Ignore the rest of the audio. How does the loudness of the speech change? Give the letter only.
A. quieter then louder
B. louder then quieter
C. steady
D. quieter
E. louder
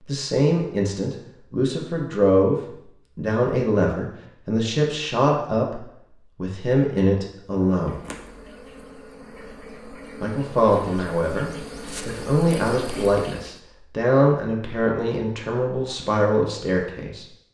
C.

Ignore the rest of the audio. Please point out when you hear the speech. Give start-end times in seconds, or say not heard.
0.1-8.0, 10.2-17.2.